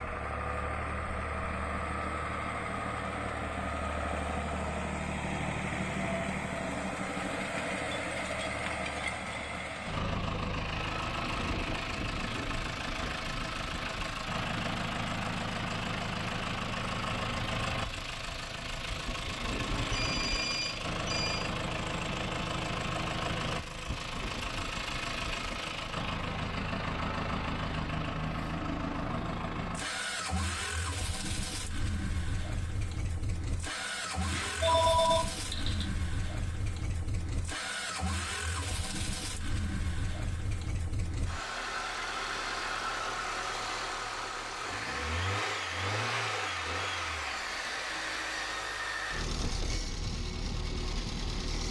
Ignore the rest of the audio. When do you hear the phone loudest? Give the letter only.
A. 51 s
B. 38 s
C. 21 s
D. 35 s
D.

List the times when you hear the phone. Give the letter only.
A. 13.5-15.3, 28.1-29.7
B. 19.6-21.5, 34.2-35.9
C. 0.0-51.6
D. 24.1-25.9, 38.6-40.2
B.